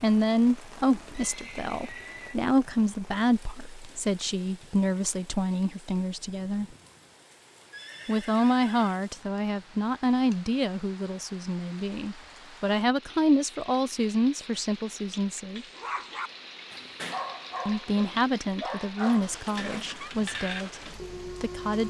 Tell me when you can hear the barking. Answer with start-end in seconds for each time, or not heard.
15.6-21.8.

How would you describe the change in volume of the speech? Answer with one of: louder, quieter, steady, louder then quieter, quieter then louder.
steady.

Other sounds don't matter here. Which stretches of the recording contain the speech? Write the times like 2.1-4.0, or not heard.
0.0-6.7, 8.1-15.7, 17.6-21.8.